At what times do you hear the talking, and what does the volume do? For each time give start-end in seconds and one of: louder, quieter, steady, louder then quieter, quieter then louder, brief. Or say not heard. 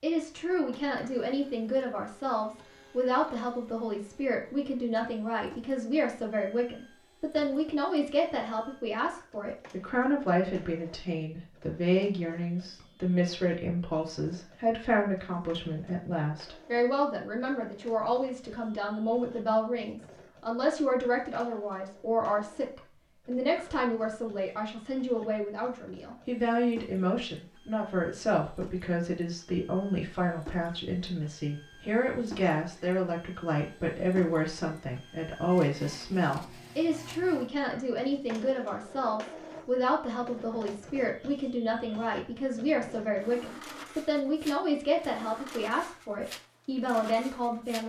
0.0-47.8 steady.